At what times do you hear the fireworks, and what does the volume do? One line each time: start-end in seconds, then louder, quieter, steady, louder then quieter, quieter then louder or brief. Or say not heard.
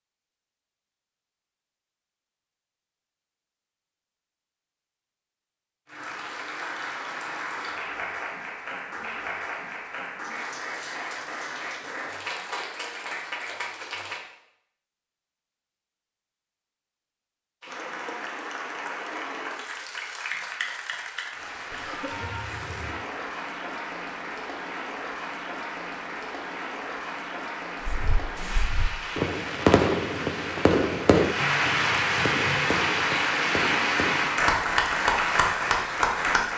27.9-34.4 louder then quieter.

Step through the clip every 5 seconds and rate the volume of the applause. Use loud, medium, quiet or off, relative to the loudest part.
off, medium, medium, medium, medium, medium, loud, loud.